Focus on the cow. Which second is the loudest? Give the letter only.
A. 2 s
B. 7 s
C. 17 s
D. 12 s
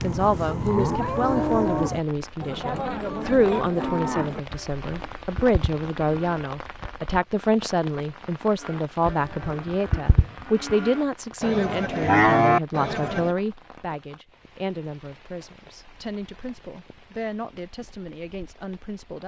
D.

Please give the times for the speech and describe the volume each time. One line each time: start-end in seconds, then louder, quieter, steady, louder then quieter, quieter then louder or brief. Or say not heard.
0.0-19.2 quieter.